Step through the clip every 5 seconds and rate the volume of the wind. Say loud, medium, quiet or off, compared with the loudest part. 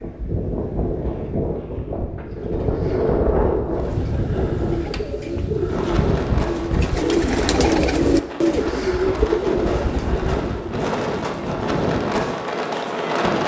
loud, medium, loud.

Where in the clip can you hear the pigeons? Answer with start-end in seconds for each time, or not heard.
2.2-10.8.